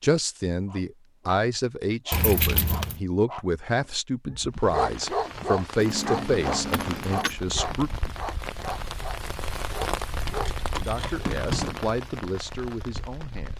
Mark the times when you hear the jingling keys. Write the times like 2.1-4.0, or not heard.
2.1-3.0, 5.8-7.3, 10.2-11.8.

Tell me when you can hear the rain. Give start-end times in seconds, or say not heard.
4.5-13.5.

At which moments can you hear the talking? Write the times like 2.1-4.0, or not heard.
0.0-7.9, 10.8-13.5.